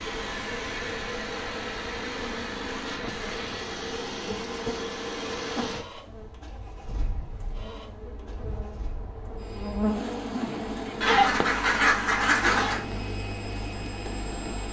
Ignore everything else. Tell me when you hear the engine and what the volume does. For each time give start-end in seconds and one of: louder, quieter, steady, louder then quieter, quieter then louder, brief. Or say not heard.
0.0-14.6 quieter then louder.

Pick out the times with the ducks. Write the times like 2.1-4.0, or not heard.
11.0-12.8.